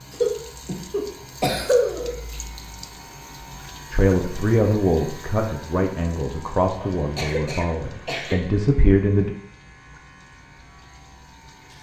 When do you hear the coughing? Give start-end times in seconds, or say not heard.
0.1-2.1, 6.8-8.4.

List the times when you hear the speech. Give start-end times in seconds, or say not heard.
3.9-9.3.